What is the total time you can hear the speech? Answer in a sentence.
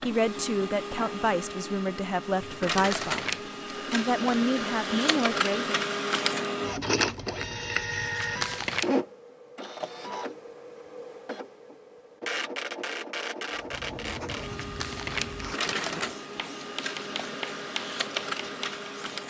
You can hear the speech for 6 seconds altogether.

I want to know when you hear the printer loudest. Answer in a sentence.
The loudest moment of the printer is at 7 seconds.